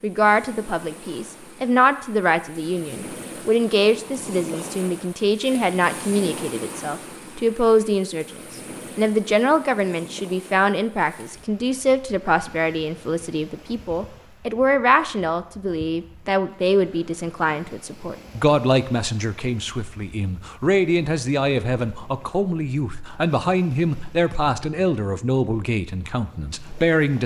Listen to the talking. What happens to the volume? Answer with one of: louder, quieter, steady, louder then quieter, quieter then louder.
steady.